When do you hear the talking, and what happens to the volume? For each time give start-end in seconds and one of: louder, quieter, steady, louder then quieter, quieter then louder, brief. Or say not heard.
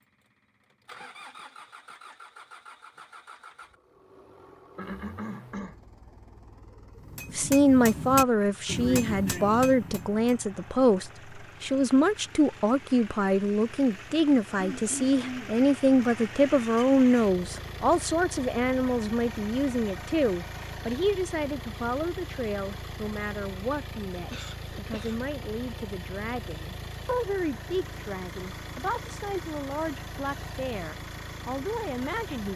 7.3-32.5 quieter.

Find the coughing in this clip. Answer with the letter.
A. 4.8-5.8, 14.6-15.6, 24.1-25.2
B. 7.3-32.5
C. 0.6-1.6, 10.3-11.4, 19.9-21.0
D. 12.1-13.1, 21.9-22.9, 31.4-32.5
A.